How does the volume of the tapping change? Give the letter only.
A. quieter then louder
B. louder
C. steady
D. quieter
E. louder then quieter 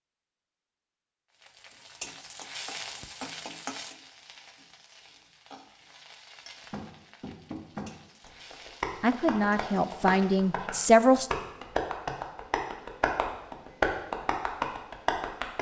B.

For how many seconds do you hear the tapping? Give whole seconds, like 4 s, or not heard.
9 s.